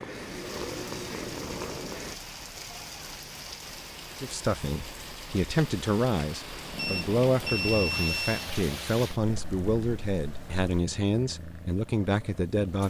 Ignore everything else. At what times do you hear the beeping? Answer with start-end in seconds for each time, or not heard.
6.8-8.5.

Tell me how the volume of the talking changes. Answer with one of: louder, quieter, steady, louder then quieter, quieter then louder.
steady.